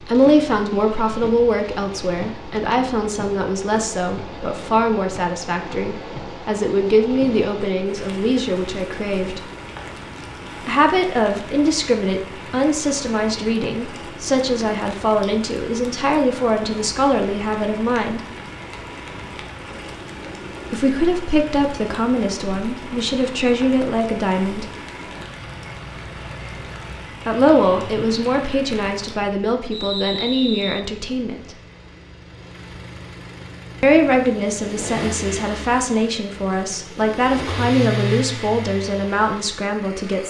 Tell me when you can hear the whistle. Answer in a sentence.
The whistle can be heard from 29.7 to 30.9 s.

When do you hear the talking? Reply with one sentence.
You can hear the talking from 0.0 to 9.4 s, from 10.7 to 18.2 s, from 20.7 to 24.6 s, from 27.2 to 31.6 s and from 33.8 to 40.2 s.